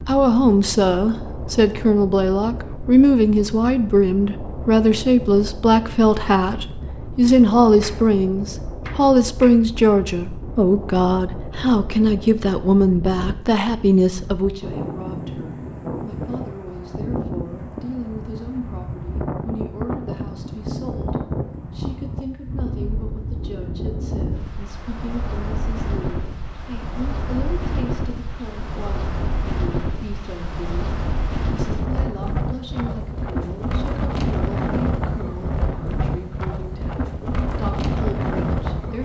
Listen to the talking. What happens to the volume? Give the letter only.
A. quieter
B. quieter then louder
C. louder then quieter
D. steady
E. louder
A.